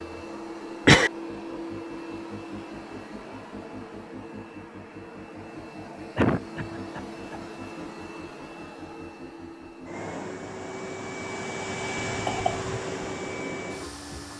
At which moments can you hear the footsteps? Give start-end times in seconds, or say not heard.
not heard.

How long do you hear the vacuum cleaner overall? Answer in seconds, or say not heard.
14 s.